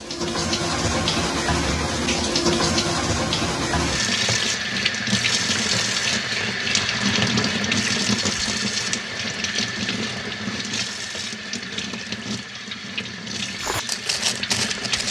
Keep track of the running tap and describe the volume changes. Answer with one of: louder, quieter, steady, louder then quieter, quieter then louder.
quieter.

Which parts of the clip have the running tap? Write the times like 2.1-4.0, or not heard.
0.0-15.0.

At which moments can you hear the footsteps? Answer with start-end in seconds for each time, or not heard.
13.6-15.0.